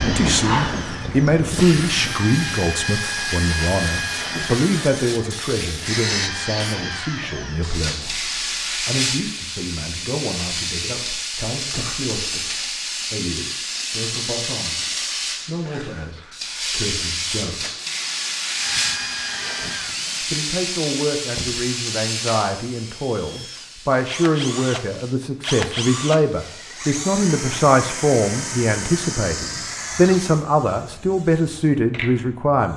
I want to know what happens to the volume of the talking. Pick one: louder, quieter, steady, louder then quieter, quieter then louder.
quieter then louder.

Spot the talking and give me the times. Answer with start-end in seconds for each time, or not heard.
0.0-17.7, 20.2-32.7.